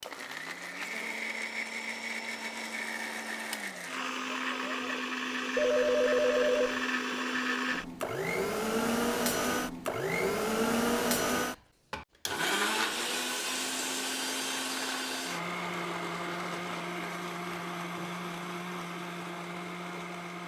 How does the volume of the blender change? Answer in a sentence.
The loudness of the blender goes up, then down.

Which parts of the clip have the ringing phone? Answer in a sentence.
You can hear the ringing phone from 5.5 to 6.8 s.